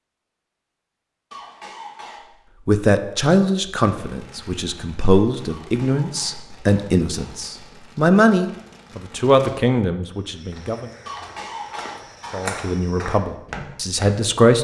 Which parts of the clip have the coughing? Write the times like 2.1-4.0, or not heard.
1.3-2.3, 5.5-7.5, 11.1-12.6.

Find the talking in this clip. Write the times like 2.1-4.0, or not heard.
2.6-10.9, 12.3-14.5.